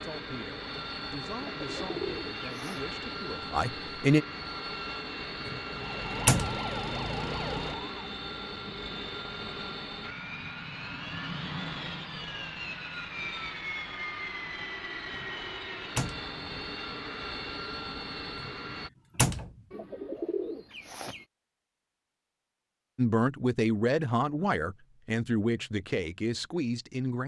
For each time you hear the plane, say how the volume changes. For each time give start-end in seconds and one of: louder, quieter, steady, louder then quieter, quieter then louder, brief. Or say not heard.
0.0-18.9 steady.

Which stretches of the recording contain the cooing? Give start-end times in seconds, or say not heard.
1.4-2.9, 19.7-21.2.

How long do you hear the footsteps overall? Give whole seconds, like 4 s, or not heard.
not heard.